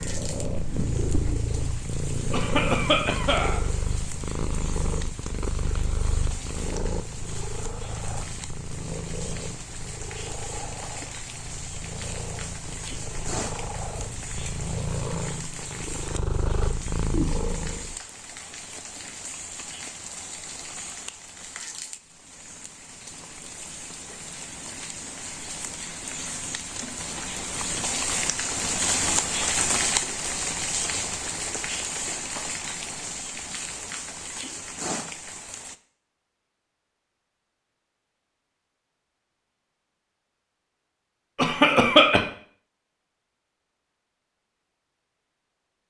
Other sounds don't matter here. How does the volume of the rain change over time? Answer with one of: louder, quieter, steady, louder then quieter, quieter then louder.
louder.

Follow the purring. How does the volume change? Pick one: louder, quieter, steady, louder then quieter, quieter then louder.
quieter then louder.